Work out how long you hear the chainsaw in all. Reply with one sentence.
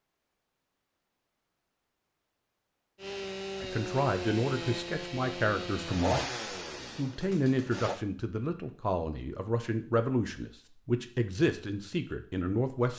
The chainsaw can be heard for 5 seconds in total.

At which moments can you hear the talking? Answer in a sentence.
You can hear the talking from 3.6 to 6.2 s and from 7.0 to 12.9 s.